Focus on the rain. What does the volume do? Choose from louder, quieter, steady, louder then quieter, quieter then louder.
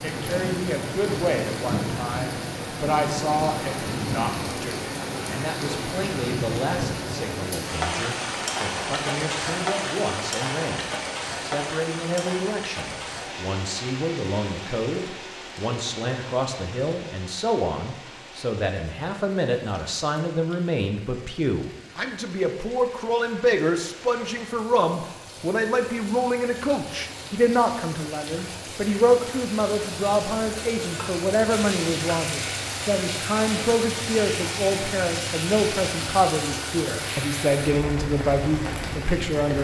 quieter then louder.